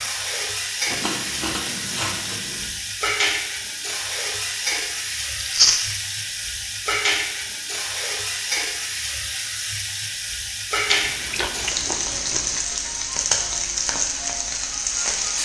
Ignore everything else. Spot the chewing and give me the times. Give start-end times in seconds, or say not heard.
0.8-2.7, 5.3-5.9, 10.8-12.6.